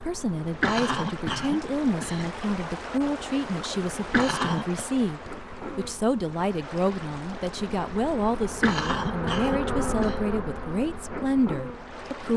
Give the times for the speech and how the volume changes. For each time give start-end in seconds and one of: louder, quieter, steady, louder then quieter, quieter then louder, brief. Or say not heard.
0.0-12.3 steady.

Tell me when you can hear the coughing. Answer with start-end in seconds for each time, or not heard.
0.6-2.3, 4.1-4.8, 8.6-10.2.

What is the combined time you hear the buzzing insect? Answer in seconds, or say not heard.
12 s.